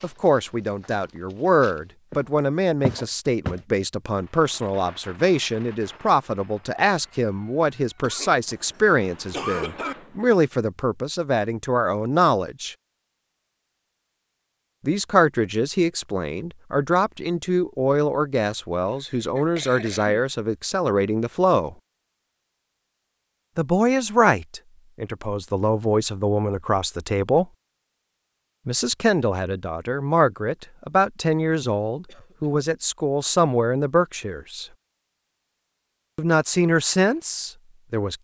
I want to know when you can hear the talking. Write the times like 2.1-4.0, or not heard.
0.0-12.8, 14.8-21.8, 23.6-27.4, 28.6-34.6, 36.1-38.1.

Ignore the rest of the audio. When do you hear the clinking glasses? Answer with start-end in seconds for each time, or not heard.
not heard.